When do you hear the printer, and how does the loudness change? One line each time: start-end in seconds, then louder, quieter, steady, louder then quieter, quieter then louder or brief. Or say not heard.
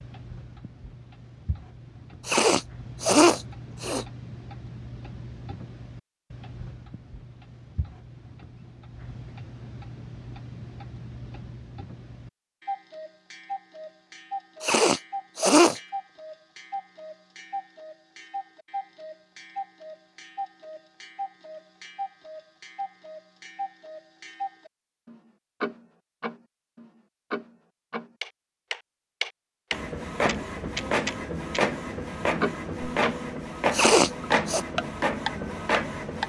29.7-36.2 steady.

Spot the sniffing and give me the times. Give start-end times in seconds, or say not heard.
2.2-4.0, 14.6-15.8, 33.7-34.6.